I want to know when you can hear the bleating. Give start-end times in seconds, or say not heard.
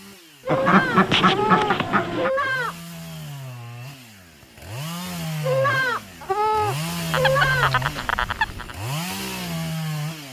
0.5-2.8, 5.4-7.8.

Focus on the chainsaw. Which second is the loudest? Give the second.
7 s.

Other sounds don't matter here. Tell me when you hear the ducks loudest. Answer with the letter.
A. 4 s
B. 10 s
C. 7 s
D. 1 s
D.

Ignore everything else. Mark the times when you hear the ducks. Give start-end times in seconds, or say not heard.
0.5-2.3, 7.1-8.8.